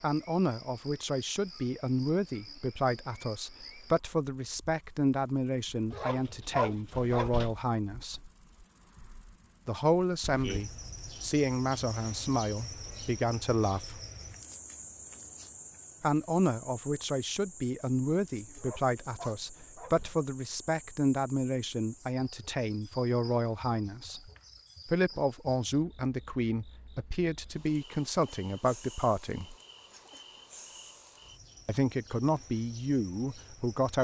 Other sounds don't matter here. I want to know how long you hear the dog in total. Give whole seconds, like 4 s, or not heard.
3 s.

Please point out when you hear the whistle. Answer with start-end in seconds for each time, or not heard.
not heard.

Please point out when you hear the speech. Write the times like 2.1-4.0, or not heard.
0.0-8.3, 9.7-14.0, 16.0-29.6, 31.6-33.9.